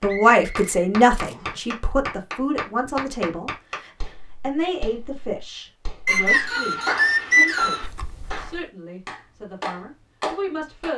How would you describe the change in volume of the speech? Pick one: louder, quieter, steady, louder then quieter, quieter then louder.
quieter.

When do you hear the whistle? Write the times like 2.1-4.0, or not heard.
0.1-1.6, 6.0-7.8.